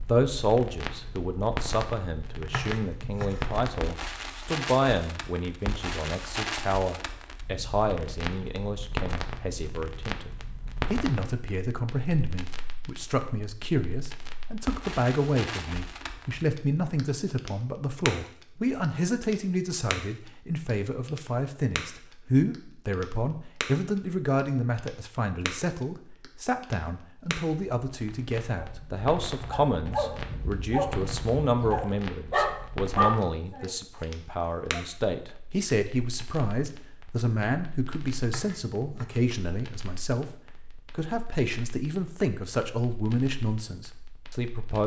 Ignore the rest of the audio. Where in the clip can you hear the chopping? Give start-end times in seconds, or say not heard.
2.4-3.6, 38.1-39.3.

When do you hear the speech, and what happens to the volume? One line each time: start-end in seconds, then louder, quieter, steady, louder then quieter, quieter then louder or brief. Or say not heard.
0.0-44.8 steady.